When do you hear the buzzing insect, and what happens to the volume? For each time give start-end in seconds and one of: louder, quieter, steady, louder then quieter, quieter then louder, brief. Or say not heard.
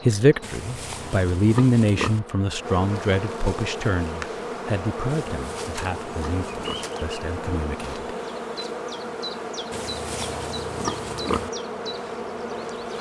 0.0-12.9 louder.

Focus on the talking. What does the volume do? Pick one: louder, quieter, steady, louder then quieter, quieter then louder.
quieter.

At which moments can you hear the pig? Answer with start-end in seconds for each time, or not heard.
0.4-2.2, 5.0-6.9, 9.7-11.5.